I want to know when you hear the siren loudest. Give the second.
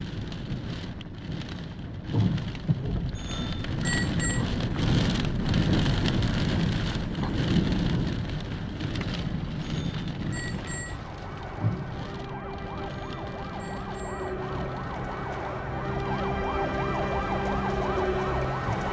18 s.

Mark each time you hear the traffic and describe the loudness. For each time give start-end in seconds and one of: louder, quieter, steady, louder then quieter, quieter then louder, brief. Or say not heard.
not heard.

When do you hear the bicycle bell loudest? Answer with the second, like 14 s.
4 s.